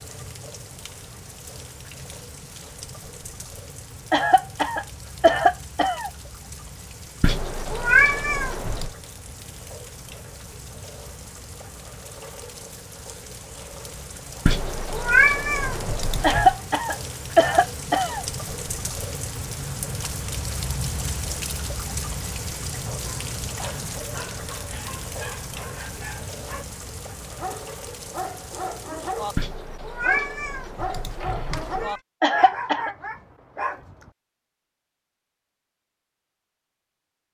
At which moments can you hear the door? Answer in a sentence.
The door can't be heard in this clip.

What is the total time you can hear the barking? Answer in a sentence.
The barking can be heard for 11 seconds in total.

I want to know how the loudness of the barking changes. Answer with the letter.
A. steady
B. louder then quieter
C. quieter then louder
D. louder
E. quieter
D.